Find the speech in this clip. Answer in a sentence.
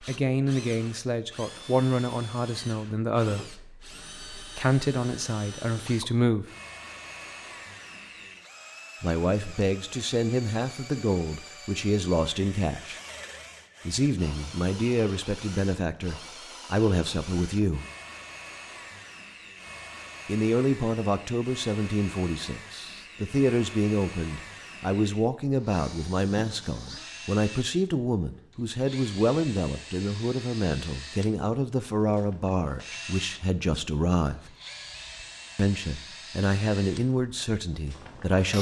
The speech can be heard from 0.0 to 6.5 s, from 9.0 to 13.0 s, from 13.8 to 17.9 s, from 20.2 to 34.5 s and from 35.5 to 38.5 s.